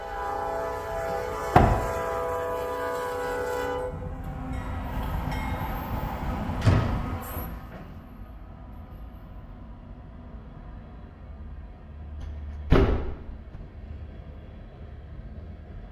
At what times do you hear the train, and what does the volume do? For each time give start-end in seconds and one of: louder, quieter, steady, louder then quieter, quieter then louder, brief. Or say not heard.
0.0-15.8 quieter.